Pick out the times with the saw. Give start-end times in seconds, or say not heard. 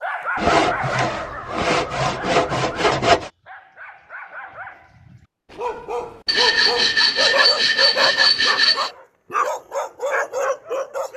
0.3-3.3, 6.2-8.9.